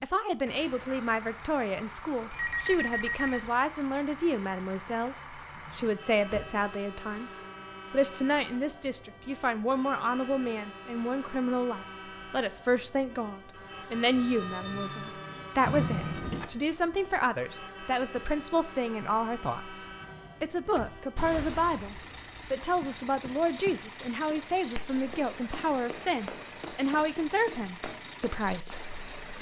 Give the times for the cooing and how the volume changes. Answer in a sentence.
You can't hear the cooing here.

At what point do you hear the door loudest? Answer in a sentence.
The loudest moment of the door is at 16 seconds.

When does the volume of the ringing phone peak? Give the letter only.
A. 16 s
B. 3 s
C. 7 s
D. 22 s
B.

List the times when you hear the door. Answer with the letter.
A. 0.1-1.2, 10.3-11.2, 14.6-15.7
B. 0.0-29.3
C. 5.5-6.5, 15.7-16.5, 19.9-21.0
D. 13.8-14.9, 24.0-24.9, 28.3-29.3
C.